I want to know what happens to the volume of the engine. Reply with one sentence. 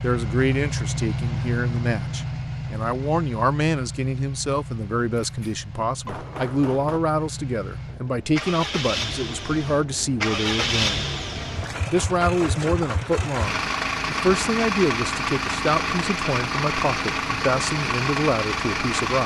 The volume of the engine goes down, then up.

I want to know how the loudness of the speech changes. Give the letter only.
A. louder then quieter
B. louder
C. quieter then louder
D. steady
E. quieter
D.